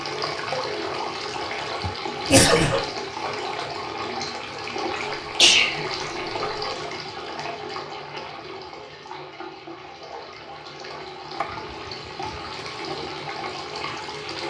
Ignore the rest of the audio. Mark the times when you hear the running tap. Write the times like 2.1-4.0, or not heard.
0.0-14.4.